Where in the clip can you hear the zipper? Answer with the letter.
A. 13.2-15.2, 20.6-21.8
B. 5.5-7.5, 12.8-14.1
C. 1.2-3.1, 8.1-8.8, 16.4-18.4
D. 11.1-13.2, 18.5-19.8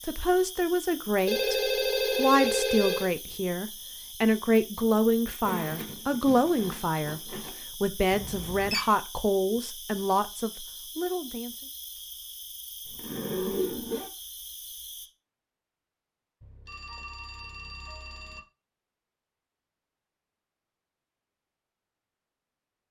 B.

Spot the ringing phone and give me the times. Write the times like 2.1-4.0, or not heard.
1.2-3.1, 8.1-8.8, 16.4-18.4.